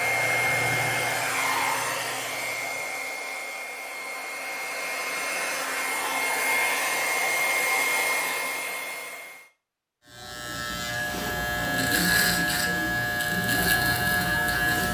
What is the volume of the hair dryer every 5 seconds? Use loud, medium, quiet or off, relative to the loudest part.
loud, loud, off.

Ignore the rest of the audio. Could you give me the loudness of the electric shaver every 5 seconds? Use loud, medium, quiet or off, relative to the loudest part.
quiet, off, loud.